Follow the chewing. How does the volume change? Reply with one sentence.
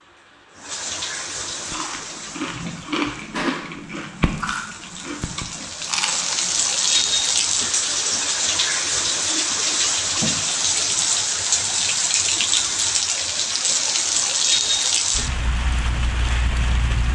The volume of the chewing goes down.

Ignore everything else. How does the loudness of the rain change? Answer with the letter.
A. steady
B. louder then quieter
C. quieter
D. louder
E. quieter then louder
D.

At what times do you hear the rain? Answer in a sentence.
You can hear the rain from 0.0 to 17.1 s.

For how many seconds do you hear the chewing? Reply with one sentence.
You can hear the chewing for 6 seconds altogether.